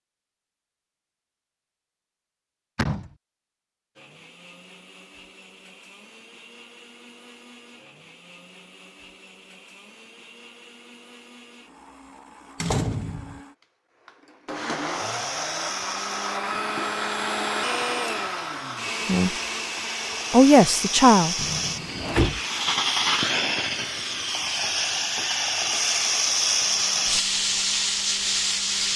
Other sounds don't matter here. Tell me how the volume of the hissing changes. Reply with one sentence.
The loudness of the hissing goes up.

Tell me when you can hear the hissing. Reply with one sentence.
The hissing can be heard from 14.7 to 28.9 s.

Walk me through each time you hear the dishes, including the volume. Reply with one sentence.
You can't hear the dishes here.